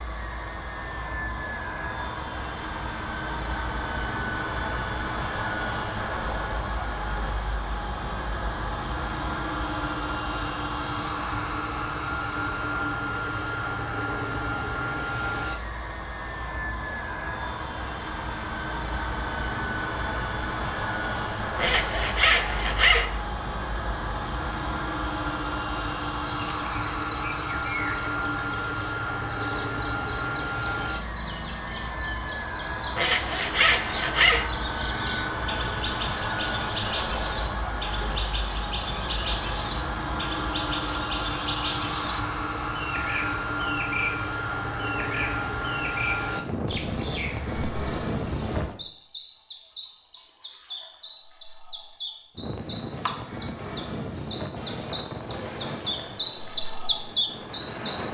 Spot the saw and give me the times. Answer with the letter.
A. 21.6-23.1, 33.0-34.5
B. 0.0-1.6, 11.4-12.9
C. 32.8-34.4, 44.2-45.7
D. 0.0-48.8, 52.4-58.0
A.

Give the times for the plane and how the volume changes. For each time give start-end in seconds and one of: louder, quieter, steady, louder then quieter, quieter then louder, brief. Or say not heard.
0.0-48.8 steady
52.4-58.0 quieter.